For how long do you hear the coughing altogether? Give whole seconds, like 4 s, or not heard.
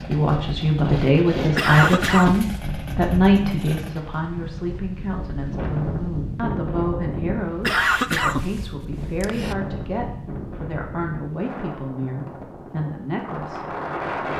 3 s.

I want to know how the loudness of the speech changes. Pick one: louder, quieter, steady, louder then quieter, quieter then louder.
quieter.